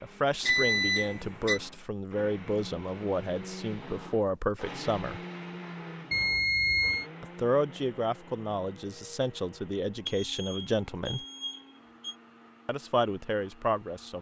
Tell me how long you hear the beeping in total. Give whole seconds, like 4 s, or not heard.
4 s.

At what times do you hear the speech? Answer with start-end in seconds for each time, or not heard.
0.0-5.2, 7.2-11.2, 12.7-14.1.